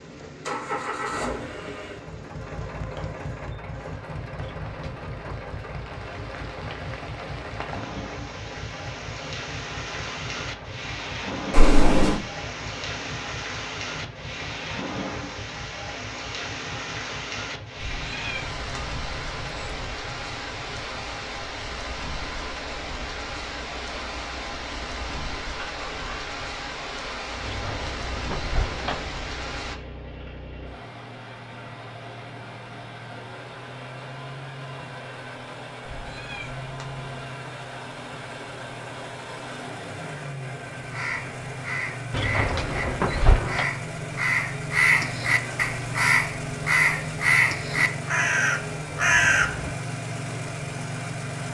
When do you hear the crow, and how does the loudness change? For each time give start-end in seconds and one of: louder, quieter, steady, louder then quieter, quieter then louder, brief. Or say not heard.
40.8-49.8 louder.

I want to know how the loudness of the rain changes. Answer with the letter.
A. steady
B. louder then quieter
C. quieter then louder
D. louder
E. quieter
D.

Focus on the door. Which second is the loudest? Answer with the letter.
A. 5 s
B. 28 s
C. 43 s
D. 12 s
C.